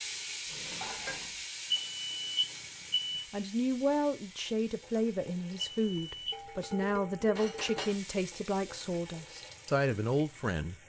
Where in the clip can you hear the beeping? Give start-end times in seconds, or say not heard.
1.7-3.2, 5.5-6.4.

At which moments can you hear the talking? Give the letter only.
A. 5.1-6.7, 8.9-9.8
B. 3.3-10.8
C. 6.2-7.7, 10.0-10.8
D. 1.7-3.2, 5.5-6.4
B.